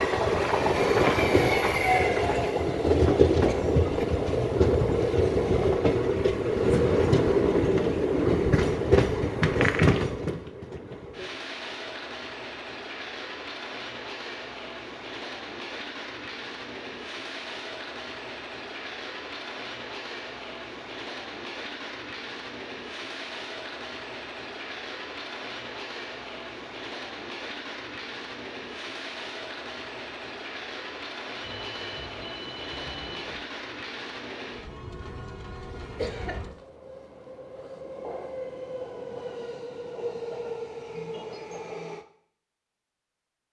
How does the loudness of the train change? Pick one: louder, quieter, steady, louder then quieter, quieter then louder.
quieter.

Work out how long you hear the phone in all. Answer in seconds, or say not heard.
2 s.